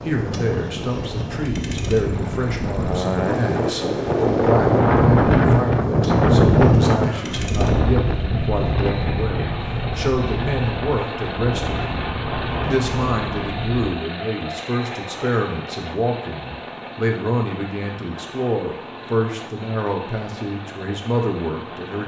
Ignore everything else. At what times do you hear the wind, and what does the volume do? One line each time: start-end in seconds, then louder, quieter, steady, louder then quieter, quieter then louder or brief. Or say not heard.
0.0-13.8 louder then quieter.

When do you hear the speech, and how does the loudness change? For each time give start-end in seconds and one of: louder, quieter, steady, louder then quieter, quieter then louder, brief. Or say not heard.
0.0-22.0 steady.